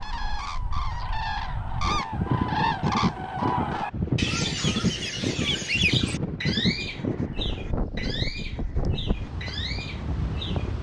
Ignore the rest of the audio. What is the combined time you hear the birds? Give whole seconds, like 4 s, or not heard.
11 s.